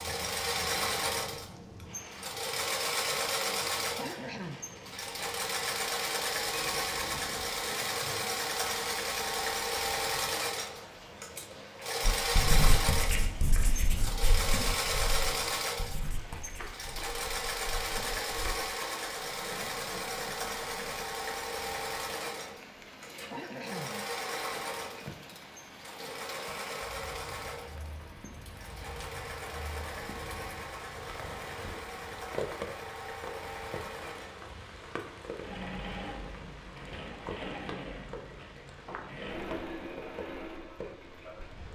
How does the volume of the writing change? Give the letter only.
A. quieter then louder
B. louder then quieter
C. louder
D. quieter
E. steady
D.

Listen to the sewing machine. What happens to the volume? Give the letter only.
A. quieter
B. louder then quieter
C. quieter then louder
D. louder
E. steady
A.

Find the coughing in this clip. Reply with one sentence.
The coughing can be heard from 4.0 to 4.6 s and from 23.3 to 24.1 s.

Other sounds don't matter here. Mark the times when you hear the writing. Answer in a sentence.
The writing can be heard from 12.0 to 18.6 s.